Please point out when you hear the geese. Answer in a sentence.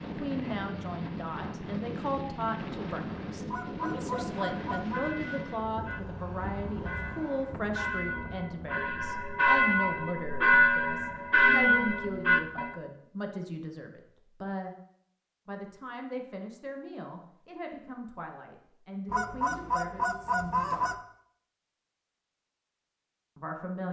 The geese can be heard from 3.5 to 5.2 s and from 19.1 to 20.9 s.